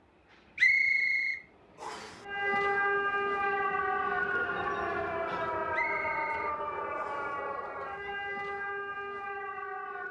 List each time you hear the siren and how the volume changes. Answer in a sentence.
The siren can be heard from 2.2 to 10.0 s, getting quieter.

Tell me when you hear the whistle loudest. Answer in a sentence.
The loudest moment of the whistle is at 1 second.